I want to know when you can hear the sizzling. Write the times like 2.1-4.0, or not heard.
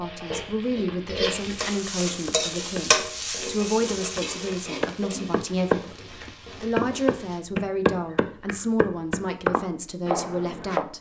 0.0-7.5.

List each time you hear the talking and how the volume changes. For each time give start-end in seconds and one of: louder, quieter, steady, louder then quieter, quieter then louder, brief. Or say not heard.
0.0-10.9 steady.